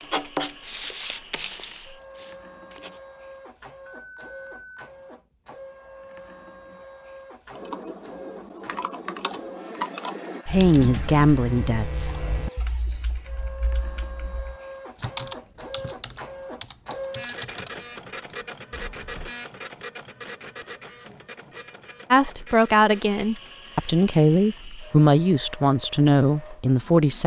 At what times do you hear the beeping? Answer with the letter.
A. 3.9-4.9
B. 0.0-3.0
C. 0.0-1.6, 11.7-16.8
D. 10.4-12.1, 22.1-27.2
A.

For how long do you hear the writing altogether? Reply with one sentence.
You can hear the writing for 3 seconds altogether.